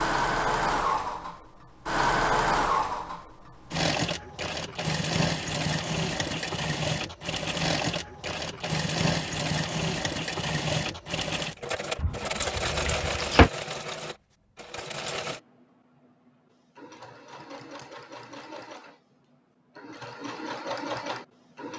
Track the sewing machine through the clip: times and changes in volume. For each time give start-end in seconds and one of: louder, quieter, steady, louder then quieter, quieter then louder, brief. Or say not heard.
0.0-21.7 quieter.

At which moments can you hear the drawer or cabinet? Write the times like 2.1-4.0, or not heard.
11.9-13.5.